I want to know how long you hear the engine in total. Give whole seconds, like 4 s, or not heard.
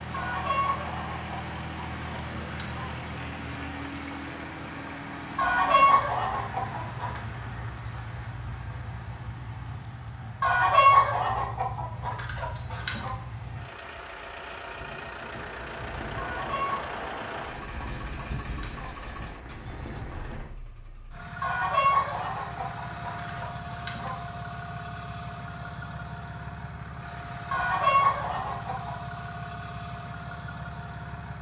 31 s.